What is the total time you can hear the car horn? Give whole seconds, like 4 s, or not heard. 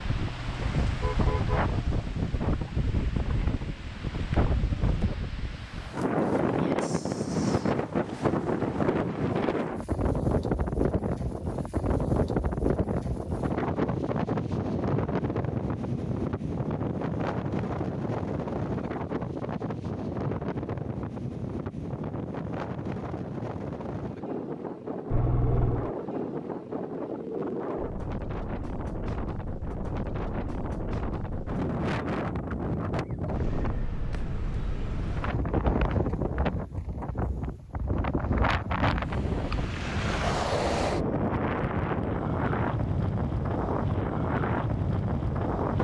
3 s.